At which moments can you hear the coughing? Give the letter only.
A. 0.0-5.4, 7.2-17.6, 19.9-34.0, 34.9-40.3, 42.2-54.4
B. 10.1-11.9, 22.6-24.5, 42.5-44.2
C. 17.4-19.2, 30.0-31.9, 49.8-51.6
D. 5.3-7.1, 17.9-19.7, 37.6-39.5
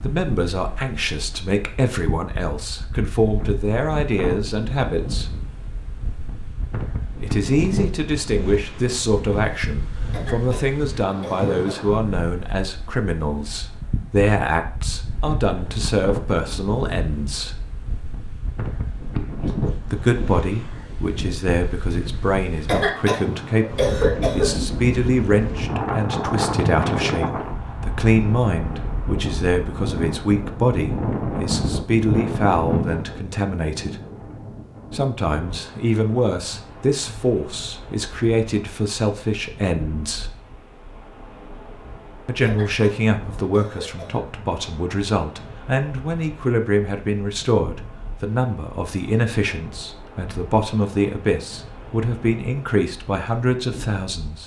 B.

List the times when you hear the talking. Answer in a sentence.
You can hear the talking from 0.0 to 5.4 s, from 7.2 to 17.6 s, from 19.9 to 34.0 s, from 34.9 to 40.3 s and from 42.2 to 54.4 s.